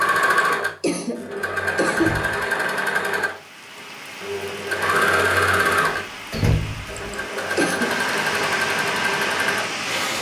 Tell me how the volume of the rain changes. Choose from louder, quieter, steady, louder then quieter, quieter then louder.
louder.